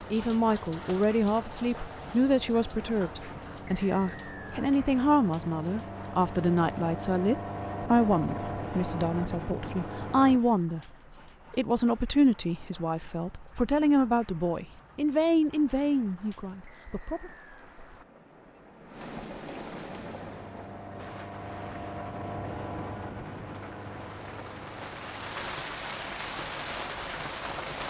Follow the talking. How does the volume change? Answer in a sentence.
The volume of the talking stays about the same.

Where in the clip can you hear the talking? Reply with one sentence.
You can hear the talking from 0.1 to 10.8 s and from 11.5 to 17.3 s.